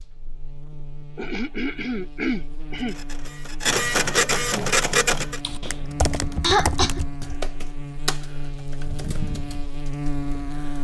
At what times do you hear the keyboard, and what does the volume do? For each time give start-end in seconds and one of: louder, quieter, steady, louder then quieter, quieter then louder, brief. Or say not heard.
5.4-10.7 quieter.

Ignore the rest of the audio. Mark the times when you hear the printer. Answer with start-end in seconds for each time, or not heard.
2.8-5.4.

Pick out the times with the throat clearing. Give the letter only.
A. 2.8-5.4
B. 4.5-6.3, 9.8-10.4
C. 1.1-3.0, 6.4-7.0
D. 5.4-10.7
C.